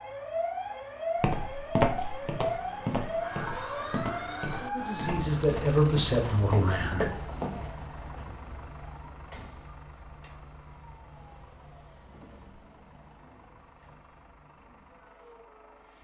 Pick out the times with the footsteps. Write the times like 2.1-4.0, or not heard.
1.2-8.2.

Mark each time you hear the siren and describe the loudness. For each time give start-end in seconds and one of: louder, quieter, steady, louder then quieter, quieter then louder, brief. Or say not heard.
0.0-15.9 quieter.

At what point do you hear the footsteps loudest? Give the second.
2 s.